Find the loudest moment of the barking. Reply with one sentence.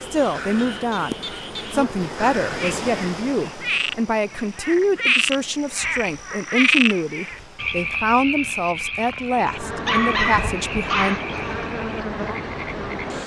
The loudest moment of the barking is at 10 seconds.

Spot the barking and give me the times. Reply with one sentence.
You can hear the barking from 9.8 to 11.4 s.